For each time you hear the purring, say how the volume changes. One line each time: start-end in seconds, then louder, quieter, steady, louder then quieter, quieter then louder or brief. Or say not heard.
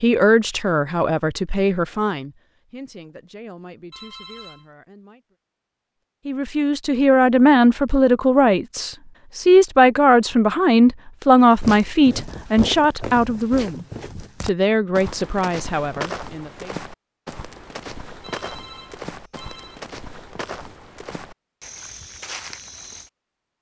not heard.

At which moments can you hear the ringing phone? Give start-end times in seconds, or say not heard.
3.9-4.7, 18.2-19.9.